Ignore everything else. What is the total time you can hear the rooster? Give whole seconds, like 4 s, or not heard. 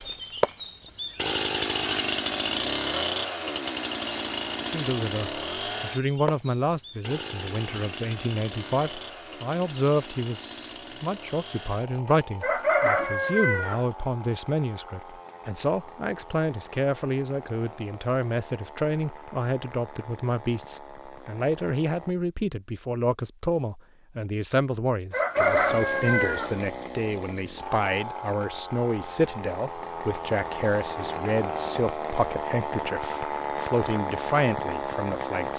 3 s.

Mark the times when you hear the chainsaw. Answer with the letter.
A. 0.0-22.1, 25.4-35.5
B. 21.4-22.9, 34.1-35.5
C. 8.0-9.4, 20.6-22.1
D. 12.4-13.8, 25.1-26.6
A.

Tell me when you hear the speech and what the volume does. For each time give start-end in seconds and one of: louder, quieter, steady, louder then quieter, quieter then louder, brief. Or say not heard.
4.6-35.5 steady.